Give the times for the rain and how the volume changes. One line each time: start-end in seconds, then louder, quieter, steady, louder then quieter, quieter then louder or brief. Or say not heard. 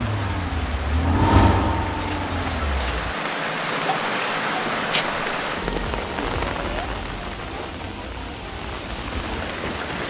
0.0-10.0 louder then quieter.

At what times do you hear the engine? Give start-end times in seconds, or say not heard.
0.0-3.1.